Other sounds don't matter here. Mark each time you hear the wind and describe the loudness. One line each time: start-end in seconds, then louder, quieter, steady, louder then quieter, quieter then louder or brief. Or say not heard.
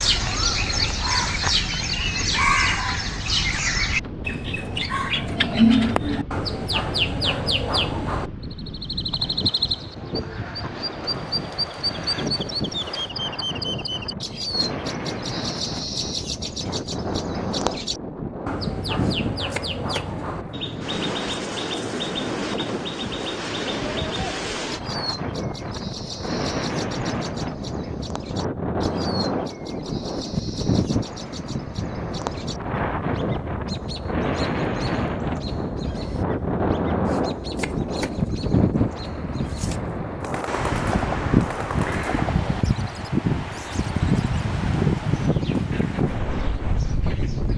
0.0-47.5 louder.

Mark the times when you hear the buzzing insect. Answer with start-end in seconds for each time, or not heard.
not heard.